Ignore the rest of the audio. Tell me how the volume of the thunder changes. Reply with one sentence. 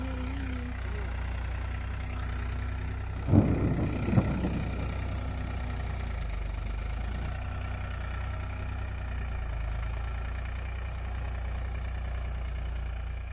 The loudness of the thunder goes down.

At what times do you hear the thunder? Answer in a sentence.
The thunder can be heard from 3.1 to 7.3 s.